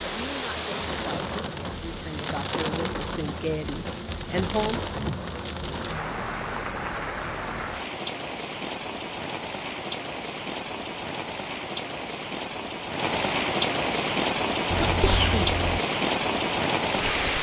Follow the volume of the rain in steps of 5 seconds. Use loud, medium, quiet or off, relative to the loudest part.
medium, medium, loud, loud.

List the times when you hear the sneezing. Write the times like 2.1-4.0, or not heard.
14.7-15.8.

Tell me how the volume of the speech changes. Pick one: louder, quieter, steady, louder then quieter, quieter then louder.
louder.